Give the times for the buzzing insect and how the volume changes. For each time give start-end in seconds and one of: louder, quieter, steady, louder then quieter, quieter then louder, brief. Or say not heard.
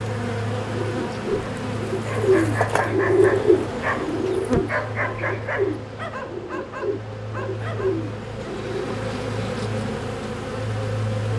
0.0-11.3 quieter then louder.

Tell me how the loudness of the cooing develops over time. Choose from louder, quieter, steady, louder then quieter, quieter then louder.
quieter.